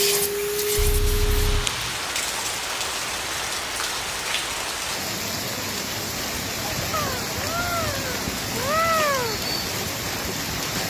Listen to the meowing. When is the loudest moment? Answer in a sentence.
The volume of the meowing peaks at 9 seconds.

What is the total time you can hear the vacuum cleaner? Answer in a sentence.
You can hear the vacuum cleaner for 2 seconds altogether.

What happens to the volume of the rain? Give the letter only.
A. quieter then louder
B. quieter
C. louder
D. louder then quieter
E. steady
E.